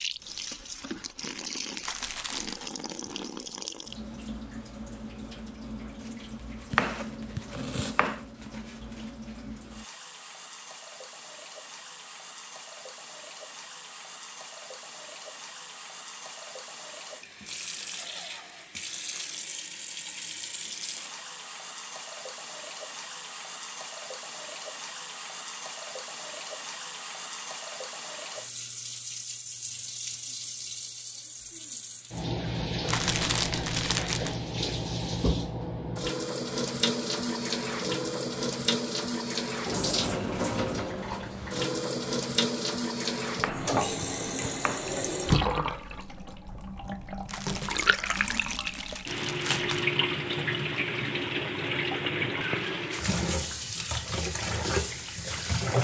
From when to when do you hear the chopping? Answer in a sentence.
The chopping can be heard from 6.7 to 8.2 s and from 43.4 to 45.0 s.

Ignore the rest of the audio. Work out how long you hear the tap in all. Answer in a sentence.
You can hear the tap for 56 seconds altogether.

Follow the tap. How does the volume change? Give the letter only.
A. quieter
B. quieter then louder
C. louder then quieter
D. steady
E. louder
E.